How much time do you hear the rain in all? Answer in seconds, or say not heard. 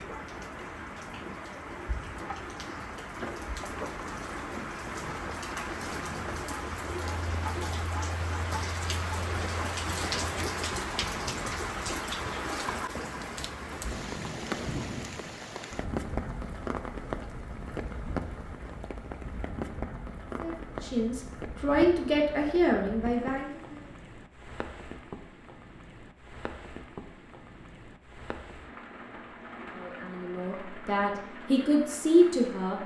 33 s.